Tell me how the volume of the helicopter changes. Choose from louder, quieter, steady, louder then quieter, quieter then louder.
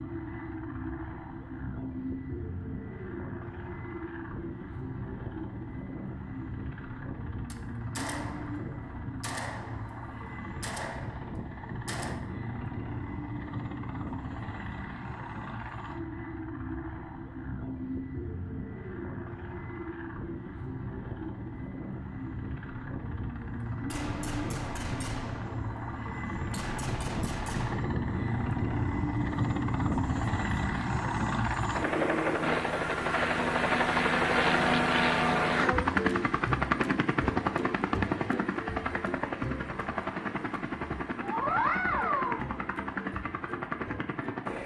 louder.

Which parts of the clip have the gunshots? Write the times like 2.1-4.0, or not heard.
7.5-12.2, 23.7-27.9.